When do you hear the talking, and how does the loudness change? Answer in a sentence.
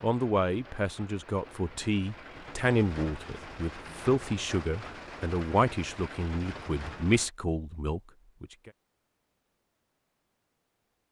You can hear the talking from 0.0 to 8.7 s, at a steady volume.